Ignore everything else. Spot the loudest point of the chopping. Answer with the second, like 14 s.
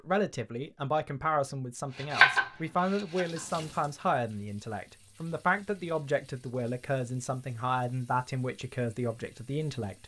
2 s.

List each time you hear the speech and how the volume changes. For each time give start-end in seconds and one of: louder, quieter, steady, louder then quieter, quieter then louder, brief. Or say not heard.
0.0-10.0 steady.